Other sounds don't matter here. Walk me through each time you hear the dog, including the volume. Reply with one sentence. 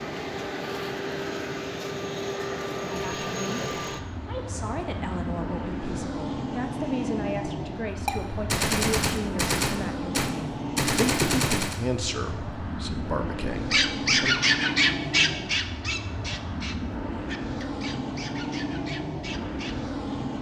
You can hear the dog from 13.7 to 19.8 s, getting quieter.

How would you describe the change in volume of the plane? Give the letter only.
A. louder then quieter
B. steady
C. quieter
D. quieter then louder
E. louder
B.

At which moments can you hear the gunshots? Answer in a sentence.
You can hear the gunshots from 8.1 to 11.8 s.